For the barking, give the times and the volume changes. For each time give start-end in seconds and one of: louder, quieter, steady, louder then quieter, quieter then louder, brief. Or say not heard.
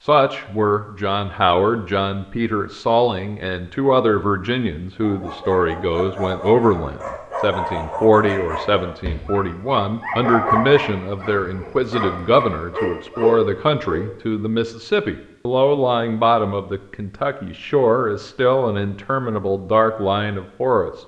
5.0-14.0 louder.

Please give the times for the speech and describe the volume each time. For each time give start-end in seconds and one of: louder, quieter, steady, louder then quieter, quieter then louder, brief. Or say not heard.
0.0-21.0 steady.